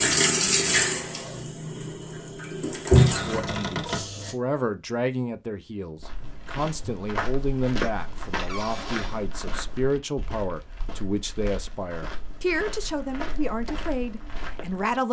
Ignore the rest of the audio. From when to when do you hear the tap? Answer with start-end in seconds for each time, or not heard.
0.0-4.3.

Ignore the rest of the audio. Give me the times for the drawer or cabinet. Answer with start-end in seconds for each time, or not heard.
3.0-4.1, 8.4-9.2.